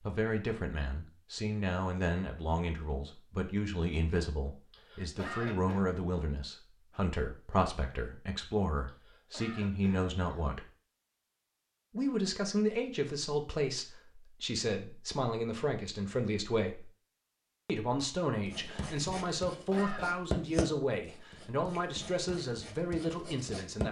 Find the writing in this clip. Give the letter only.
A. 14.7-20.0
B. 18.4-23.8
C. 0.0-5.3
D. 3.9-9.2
B.